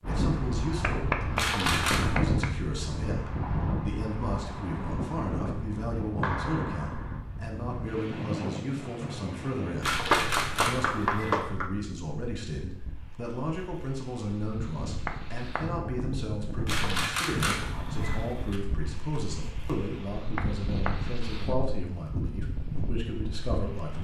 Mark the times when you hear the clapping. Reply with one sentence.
The clapping can be heard from 0.8 to 2.5 s, from 6.2 to 7.2 s, from 9.8 to 11.7 s, from 15.1 to 15.7 s and from 20.4 to 20.9 s.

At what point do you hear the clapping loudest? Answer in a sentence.
The volume of the clapping peaks at 10 seconds.